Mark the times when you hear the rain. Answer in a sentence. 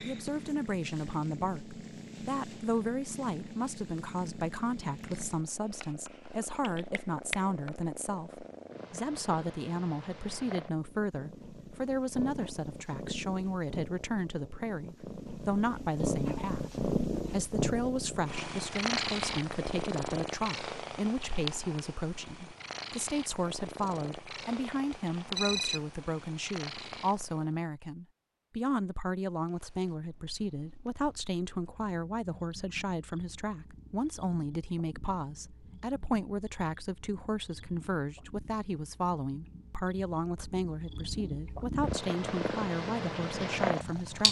You can't hear the rain here.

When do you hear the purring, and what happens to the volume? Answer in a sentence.
You can hear the purring from 0.0 to 27.6 s, getting louder then quieter; and from 29.4 to 44.2 s, getting louder.